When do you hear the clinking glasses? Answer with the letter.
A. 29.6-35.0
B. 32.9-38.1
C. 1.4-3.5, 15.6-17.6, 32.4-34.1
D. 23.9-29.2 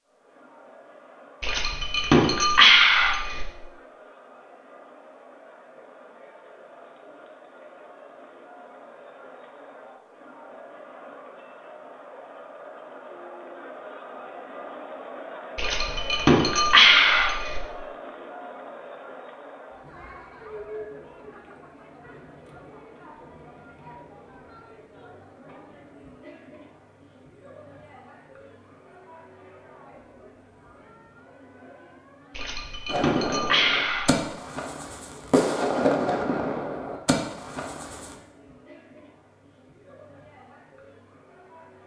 C.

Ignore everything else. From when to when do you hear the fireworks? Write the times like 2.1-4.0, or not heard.
32.9-38.1.